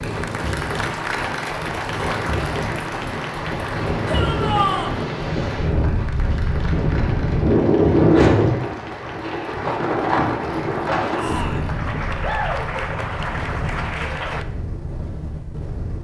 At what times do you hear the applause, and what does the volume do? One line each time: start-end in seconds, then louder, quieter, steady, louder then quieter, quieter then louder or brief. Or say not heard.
0.0-14.4 quieter then louder.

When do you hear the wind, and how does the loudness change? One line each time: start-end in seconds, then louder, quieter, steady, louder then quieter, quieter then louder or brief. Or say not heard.
0.0-15.9 louder then quieter.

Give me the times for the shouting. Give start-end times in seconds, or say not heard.
4.0-5.0, 11.1-11.8.